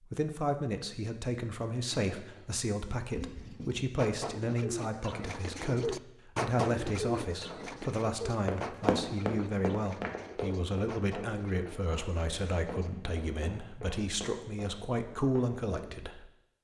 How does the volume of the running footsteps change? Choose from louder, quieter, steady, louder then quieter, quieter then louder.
quieter.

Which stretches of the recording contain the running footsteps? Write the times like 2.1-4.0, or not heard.
8.4-15.8.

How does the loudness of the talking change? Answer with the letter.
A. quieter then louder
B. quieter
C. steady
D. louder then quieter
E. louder
C.